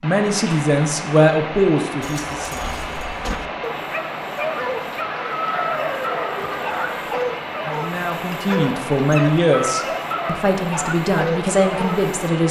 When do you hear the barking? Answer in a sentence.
You can hear the barking from 2.0 to 12.2 s.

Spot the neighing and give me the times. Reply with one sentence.
The neighing can be heard from 5.5 to 7.1 s.